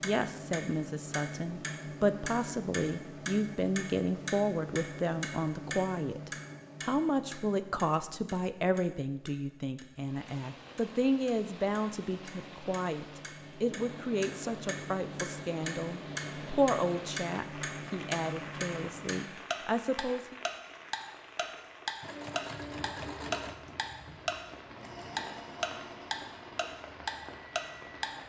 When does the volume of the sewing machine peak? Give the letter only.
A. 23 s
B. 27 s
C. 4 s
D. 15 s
A.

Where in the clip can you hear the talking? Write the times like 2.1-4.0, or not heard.
0.0-20.4.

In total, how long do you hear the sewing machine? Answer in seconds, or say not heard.
6 s.